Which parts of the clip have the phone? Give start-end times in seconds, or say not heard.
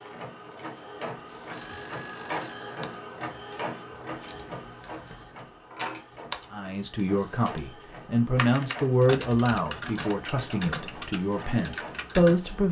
1.5-2.9.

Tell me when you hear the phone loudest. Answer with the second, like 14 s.
2 s.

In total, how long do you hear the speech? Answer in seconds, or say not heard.
6 s.